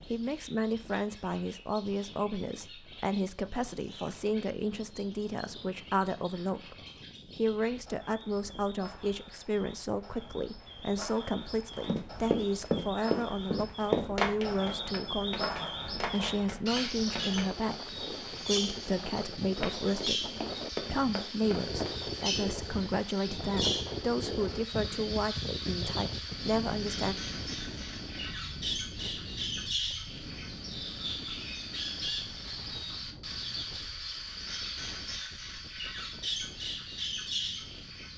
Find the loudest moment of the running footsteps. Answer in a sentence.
The volume of the running footsteps peaks at 14 seconds.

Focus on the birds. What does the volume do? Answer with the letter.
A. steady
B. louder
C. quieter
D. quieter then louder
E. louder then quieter
B.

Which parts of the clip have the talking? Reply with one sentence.
You can hear the talking from 0.1 to 6.8 s and from 7.3 to 27.1 s.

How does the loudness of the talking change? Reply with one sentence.
The volume of the talking stays about the same.